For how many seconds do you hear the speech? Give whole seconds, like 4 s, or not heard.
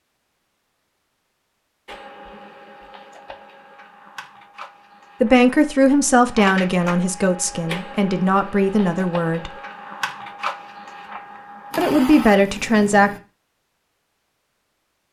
6 s.